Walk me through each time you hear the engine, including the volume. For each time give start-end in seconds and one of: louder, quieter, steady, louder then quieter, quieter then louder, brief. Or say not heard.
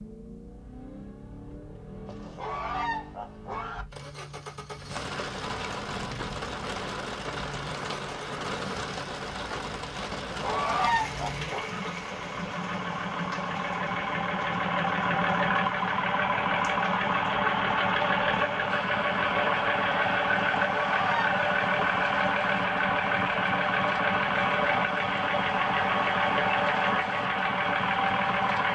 0.0-28.7 louder.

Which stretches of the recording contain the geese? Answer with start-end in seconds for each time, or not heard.
2.0-3.9, 10.1-11.7, 20.6-22.0.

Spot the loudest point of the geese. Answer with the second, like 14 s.
11 s.